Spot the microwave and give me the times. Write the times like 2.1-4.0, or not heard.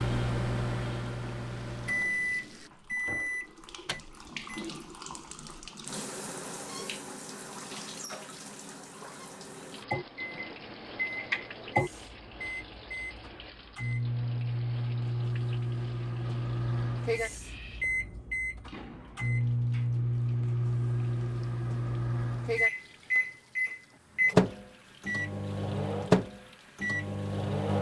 0.0-4.7, 9.8-27.7.